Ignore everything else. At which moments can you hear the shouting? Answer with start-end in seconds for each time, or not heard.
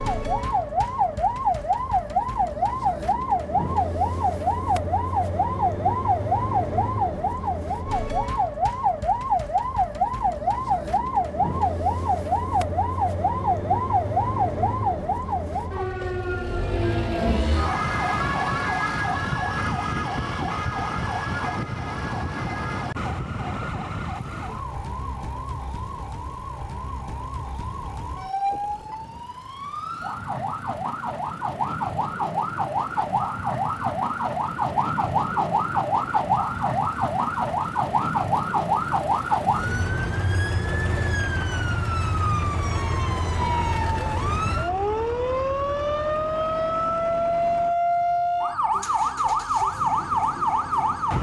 not heard.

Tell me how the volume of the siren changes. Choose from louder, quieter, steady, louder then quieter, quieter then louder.
quieter then louder.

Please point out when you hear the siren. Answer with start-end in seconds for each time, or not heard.
0.0-51.1.